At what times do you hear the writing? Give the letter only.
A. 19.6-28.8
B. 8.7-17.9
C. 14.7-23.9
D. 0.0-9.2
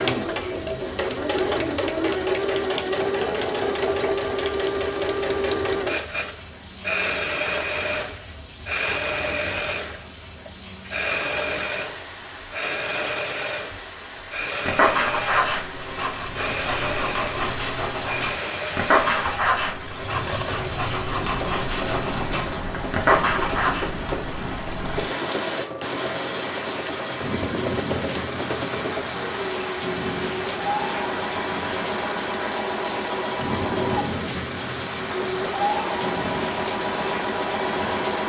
C.